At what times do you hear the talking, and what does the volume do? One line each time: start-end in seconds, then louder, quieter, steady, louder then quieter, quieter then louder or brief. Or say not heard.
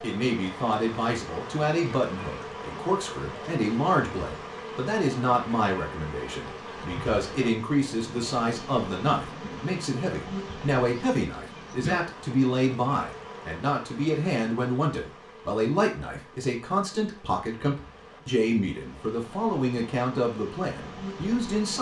0.0-21.7 steady.